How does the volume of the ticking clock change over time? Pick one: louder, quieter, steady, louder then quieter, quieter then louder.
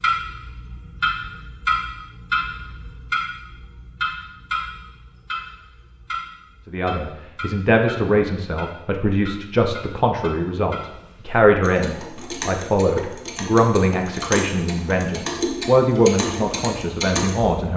quieter then louder.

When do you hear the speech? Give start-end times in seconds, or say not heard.
6.7-17.7.